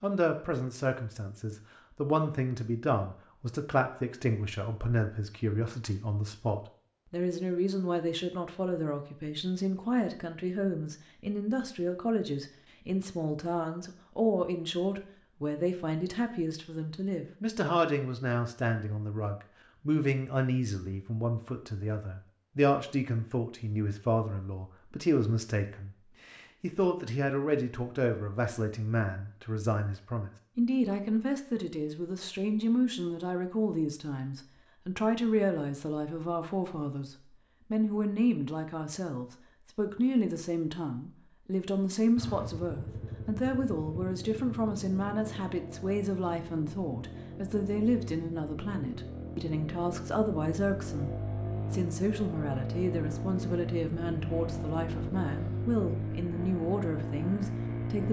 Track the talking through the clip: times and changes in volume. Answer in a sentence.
The talking can be heard from 0.0 to 58.0 s, at a steady volume.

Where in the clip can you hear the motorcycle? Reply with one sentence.
You can hear the motorcycle from 42.1 to 58.0 s.